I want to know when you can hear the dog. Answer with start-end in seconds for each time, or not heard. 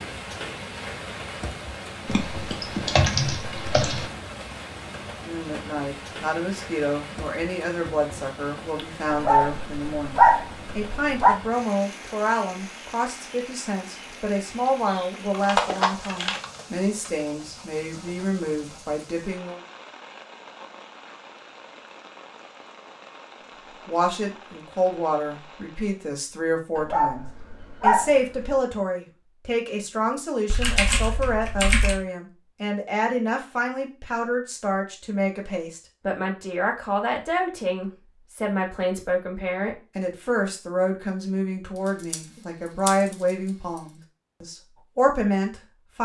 9.1-11.4, 26.8-28.5.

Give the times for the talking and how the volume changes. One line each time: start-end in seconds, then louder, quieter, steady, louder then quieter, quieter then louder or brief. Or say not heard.
5.2-19.6 steady
23.9-46.0 steady.